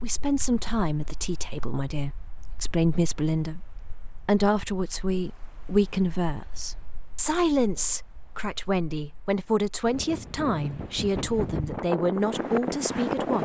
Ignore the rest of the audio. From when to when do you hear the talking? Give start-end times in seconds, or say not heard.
0.0-13.3.